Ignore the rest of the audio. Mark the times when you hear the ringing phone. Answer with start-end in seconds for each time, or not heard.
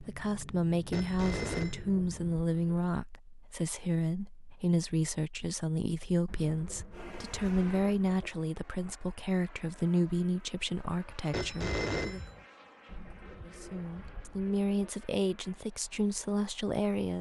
0.9-1.9, 11.3-12.4.